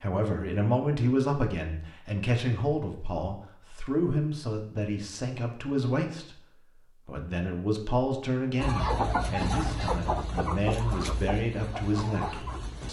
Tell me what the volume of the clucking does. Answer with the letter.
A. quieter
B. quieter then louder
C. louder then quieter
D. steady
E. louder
A.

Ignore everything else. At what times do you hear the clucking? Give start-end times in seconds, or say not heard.
8.6-12.8.